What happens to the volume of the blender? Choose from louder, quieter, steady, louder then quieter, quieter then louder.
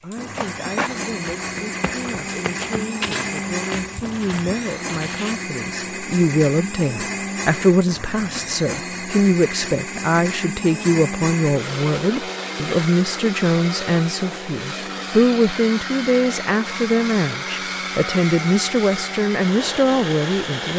steady.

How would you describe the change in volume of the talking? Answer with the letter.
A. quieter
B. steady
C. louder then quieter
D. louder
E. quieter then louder
D.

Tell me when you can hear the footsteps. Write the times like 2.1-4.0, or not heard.
0.2-5.5.